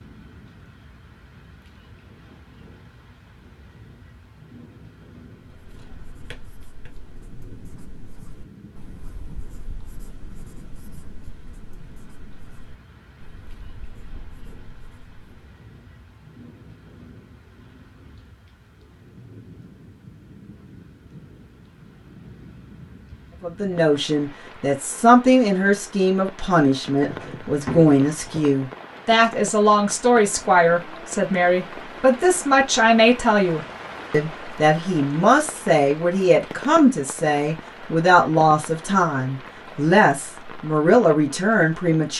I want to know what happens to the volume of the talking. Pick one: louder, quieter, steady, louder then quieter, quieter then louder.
steady.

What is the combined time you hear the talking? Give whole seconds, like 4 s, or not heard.
19 s.